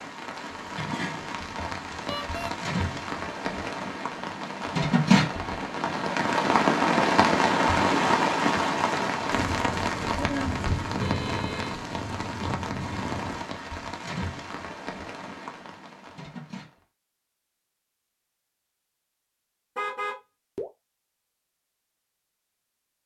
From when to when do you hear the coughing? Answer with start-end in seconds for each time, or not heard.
not heard.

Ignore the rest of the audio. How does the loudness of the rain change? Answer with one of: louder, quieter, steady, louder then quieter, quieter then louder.
louder then quieter.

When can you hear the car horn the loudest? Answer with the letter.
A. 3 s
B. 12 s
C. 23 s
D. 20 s
D.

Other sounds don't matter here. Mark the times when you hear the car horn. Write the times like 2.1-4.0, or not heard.
2.0-2.5, 11.0-11.8, 19.8-20.6.